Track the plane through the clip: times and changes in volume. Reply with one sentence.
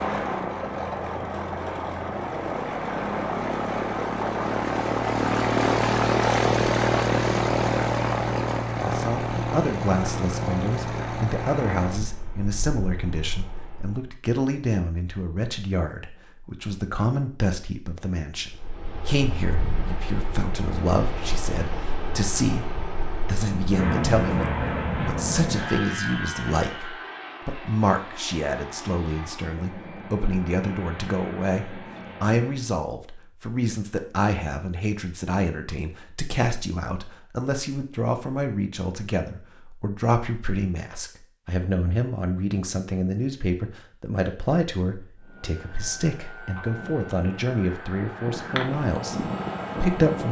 You can hear the plane from 0.0 to 14.2 s, getting louder then quieter; from 18.4 to 32.7 s, getting louder then quieter; and from 45.2 to 50.2 s, getting louder.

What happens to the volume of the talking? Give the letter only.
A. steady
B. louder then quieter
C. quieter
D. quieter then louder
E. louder
A.